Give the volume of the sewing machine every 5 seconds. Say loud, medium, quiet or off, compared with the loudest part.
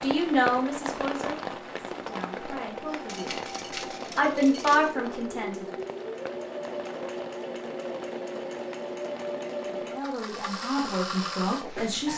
medium, loud, loud.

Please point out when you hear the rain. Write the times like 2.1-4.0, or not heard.
0.0-11.9.